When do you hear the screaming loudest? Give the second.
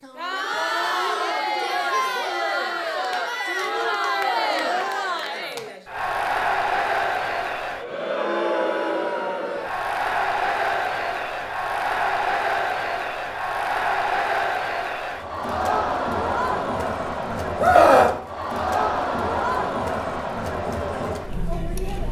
18 s.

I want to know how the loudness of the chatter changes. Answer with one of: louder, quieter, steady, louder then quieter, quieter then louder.
steady.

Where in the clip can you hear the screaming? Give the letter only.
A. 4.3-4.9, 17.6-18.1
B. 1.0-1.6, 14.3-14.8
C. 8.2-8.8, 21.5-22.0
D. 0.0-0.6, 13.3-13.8
A.